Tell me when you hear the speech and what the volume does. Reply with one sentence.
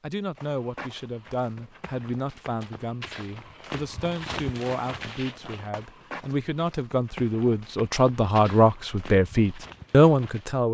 You can hear the speech from 0.0 to 10.7 s, getting louder.